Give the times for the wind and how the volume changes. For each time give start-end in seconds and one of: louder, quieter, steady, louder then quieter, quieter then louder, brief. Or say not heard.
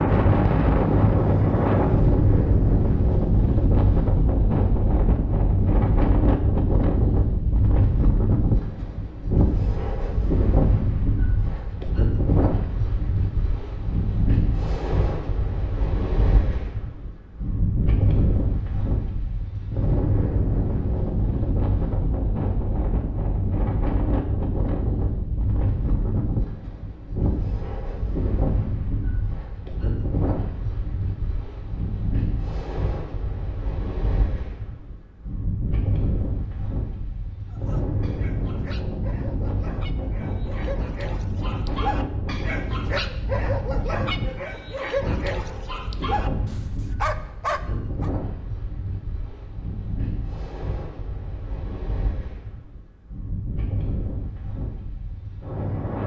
0.0-56.0 quieter.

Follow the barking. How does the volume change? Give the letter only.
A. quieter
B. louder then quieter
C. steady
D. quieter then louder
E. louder
E.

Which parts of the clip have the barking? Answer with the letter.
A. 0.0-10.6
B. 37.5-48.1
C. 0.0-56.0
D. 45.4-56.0
B.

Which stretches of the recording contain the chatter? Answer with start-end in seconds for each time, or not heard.
not heard.